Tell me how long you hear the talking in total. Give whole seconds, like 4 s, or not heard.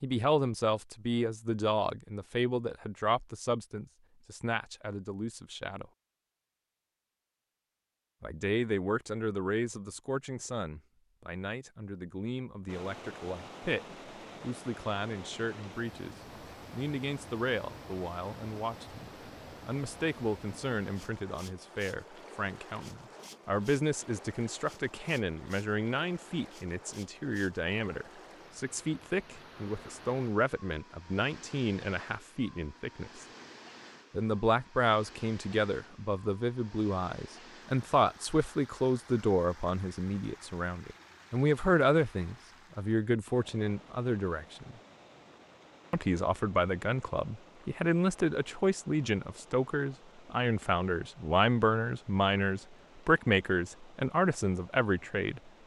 51 s.